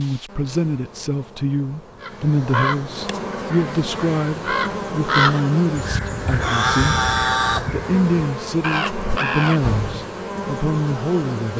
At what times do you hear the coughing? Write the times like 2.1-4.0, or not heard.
not heard.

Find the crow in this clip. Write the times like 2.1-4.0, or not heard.
2.0-10.1.